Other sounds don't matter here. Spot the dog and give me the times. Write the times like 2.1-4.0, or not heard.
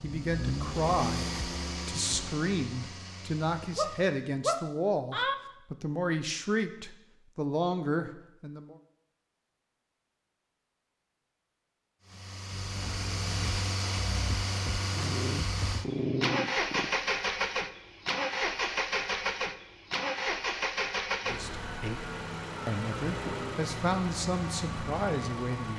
3.8-5.3, 14.9-16.9.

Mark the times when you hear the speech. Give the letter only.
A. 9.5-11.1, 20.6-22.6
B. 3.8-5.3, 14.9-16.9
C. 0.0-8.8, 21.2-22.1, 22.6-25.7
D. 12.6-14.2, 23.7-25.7
C.